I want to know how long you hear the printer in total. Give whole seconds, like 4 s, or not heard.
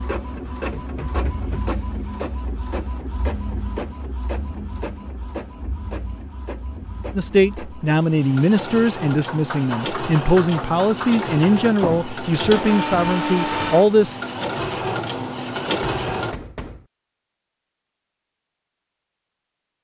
16 s.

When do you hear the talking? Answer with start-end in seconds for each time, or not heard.
7.2-14.2.